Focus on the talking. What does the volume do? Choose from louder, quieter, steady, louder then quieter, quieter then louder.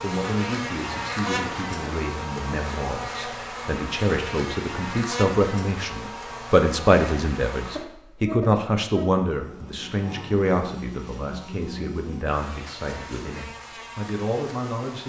louder then quieter.